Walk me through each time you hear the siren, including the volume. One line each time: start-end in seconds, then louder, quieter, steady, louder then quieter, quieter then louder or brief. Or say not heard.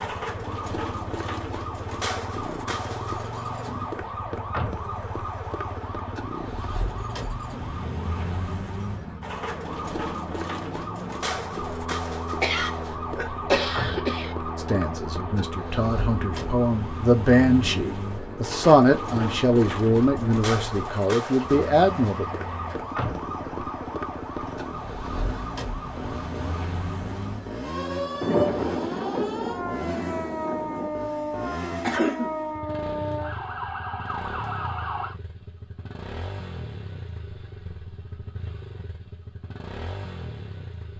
0.0-35.1 steady.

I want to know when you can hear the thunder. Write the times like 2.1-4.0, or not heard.
28.2-30.9.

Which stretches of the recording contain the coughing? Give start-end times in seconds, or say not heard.
12.4-14.3, 31.8-32.3.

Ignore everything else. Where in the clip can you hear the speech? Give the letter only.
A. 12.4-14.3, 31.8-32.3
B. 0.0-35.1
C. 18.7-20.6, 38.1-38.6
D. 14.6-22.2
D.